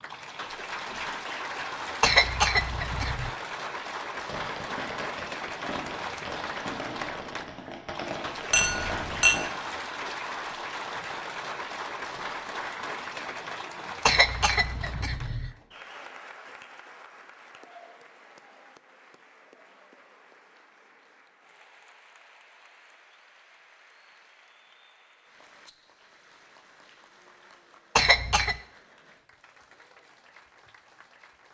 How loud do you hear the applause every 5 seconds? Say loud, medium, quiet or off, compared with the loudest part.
loud, loud, loud, quiet, quiet, quiet, quiet.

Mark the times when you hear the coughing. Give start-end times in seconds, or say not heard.
2.0-3.3, 14.1-15.5, 27.9-28.6.